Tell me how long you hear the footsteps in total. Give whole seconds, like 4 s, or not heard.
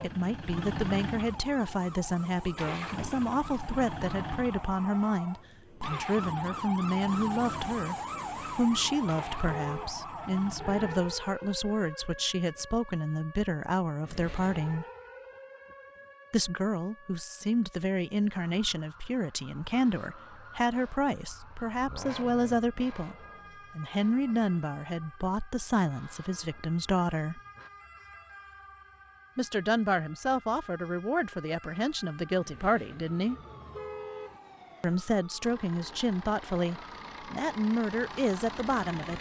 not heard.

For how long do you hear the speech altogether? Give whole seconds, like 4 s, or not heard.
34 s.